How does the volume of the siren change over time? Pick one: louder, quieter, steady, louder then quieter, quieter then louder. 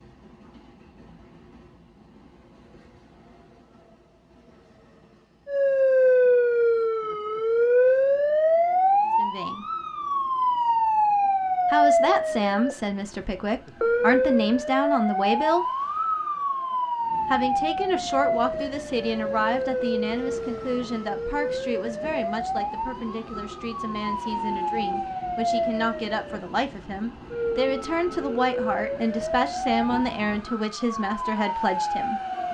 quieter.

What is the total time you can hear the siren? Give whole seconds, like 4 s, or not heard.
27 s.